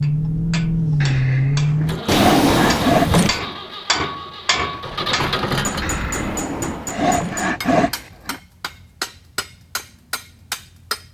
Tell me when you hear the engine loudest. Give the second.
1 s.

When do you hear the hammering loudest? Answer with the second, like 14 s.
4 s.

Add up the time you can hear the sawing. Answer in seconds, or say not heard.
5 s.